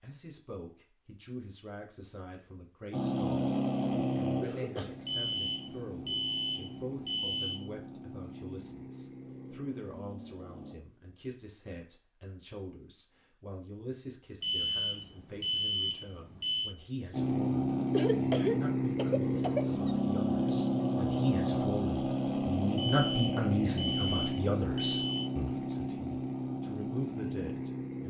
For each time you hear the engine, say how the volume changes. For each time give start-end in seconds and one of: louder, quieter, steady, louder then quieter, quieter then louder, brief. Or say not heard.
2.9-10.8 quieter
17.1-28.0 quieter.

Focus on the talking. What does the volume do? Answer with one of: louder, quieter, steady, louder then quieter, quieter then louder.
louder.